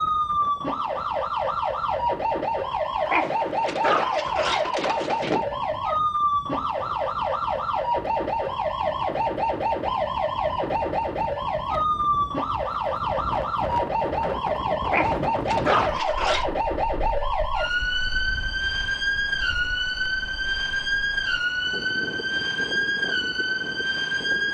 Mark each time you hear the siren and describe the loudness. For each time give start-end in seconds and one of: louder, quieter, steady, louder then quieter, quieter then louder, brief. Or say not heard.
0.0-24.4 steady.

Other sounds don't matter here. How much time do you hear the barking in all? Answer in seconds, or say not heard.
4 s.